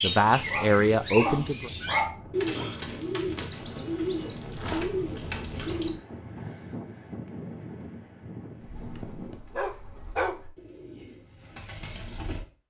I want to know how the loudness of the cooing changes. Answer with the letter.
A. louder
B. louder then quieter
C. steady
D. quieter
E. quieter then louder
E.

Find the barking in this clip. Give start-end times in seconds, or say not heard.
0.5-2.6, 4.5-5.0, 9.0-10.4.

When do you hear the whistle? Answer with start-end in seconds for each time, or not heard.
not heard.